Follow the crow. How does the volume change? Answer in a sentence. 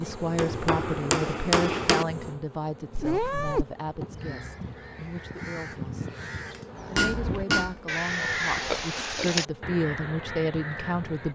The volume of the crow goes up, then down.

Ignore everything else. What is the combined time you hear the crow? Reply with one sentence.
You can hear the crow for 7 seconds altogether.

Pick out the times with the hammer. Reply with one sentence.
The hammer can be heard from 0.3 to 2.0 s and from 6.5 to 7.8 s.